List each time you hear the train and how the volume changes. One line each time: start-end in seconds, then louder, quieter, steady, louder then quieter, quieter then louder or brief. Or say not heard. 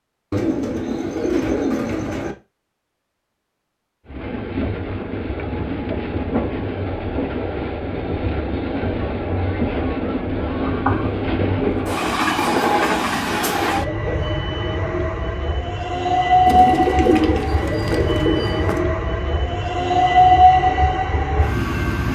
4.0-22.1 louder.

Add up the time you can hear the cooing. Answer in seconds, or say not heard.
6 s.